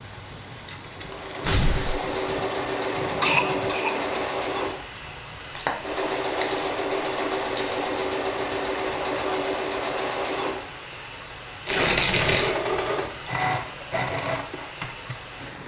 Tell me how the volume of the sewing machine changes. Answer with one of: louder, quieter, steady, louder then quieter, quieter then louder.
steady.